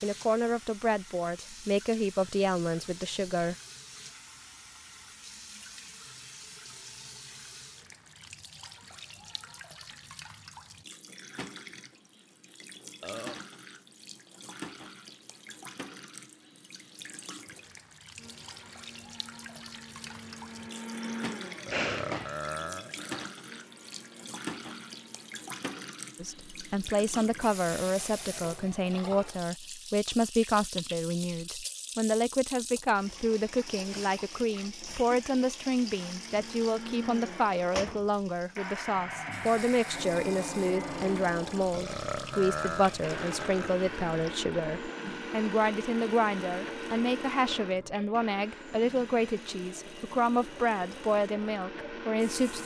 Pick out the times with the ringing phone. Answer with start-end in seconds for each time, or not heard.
21.7-22.4.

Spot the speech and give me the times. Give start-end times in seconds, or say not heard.
0.0-3.5, 26.2-52.6.